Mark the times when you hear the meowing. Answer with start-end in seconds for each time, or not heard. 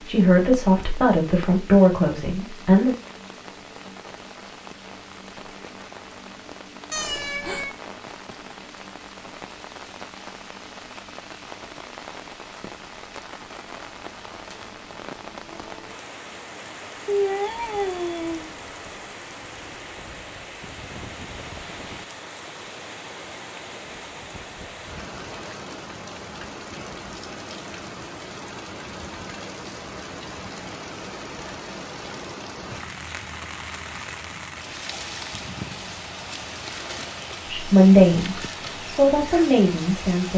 6.9-7.8, 17.1-18.9, 35.3-36.0.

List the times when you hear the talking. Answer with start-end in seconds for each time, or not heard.
0.0-3.0, 37.5-40.3.